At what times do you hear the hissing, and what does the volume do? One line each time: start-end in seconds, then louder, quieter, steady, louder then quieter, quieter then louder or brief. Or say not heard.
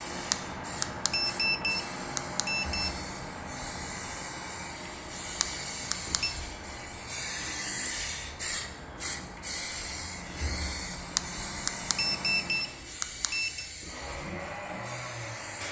0.0-15.6 louder then quieter.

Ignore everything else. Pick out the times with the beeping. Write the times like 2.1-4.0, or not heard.
0.3-2.9, 5.4-6.3, 11.2-13.7.